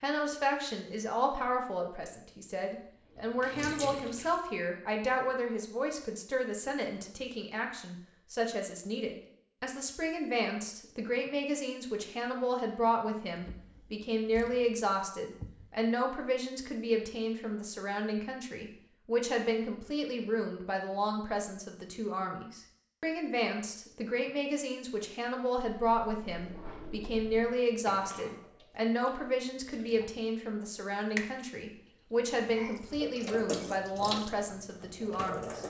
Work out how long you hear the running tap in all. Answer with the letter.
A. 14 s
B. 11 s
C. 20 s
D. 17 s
B.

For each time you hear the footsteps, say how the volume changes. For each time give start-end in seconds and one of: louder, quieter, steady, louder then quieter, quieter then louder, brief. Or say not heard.
not heard.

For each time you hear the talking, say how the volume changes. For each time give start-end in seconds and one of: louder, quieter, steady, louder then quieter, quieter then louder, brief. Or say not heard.
0.0-35.6 steady.